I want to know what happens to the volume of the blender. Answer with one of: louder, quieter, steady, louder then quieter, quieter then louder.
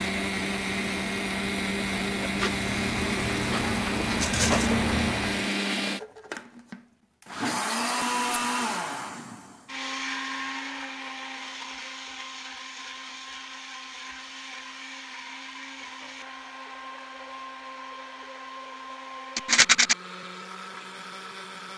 quieter.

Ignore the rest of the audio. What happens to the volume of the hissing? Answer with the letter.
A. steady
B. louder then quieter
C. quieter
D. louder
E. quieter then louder
D.